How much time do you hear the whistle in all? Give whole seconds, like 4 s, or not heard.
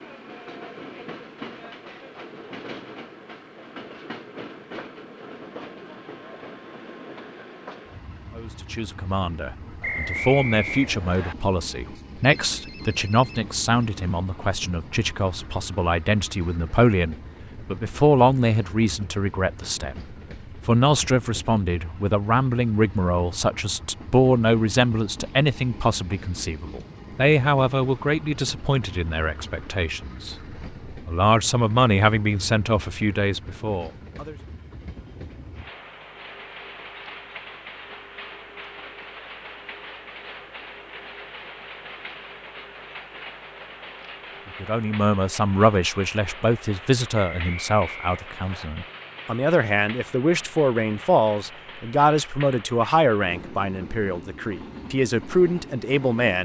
3 s.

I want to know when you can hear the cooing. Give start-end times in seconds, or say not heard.
not heard.